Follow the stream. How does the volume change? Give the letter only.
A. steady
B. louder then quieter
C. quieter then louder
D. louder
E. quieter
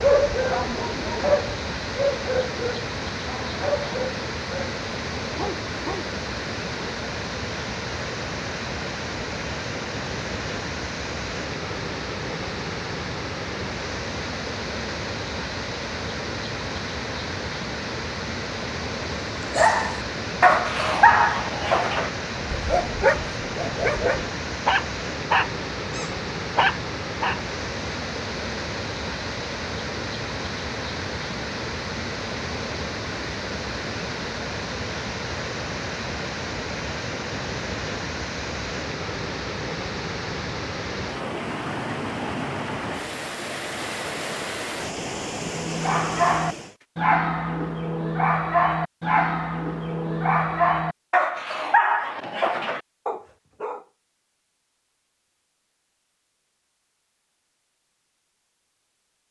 A.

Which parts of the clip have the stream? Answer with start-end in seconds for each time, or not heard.
0.0-46.9.